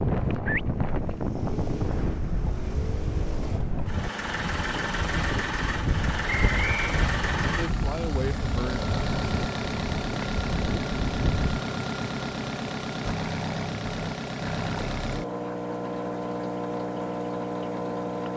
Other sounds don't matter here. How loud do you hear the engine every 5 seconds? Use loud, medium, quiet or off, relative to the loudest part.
medium, loud, loud, loud.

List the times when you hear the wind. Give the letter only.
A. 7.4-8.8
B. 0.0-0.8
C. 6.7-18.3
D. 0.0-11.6
D.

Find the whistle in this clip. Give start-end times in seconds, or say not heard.
6.2-7.0.